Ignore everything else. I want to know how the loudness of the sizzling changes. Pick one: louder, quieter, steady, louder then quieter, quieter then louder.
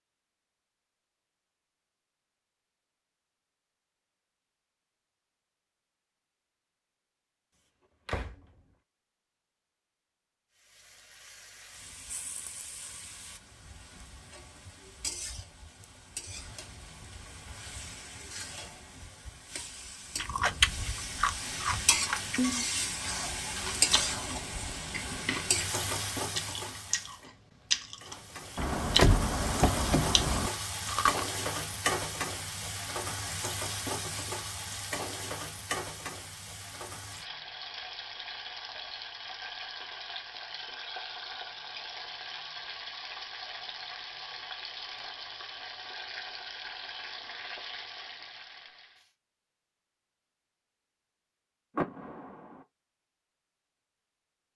louder then quieter.